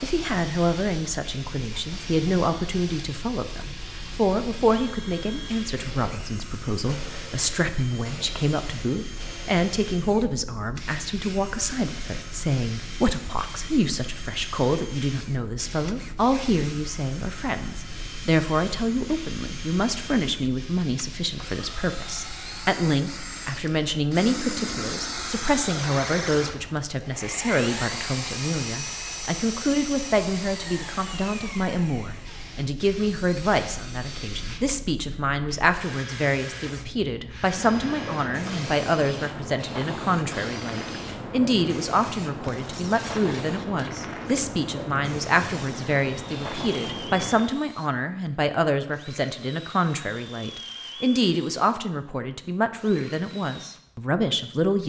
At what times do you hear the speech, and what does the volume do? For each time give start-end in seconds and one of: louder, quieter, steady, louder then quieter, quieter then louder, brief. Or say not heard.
0.0-54.8 steady.